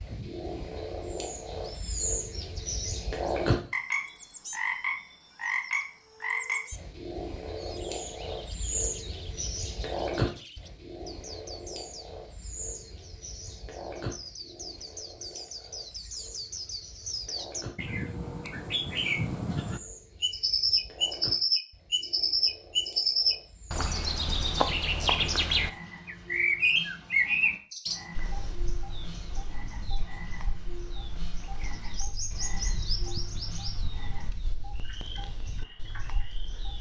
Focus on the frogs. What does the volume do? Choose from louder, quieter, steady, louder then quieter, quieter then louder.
quieter.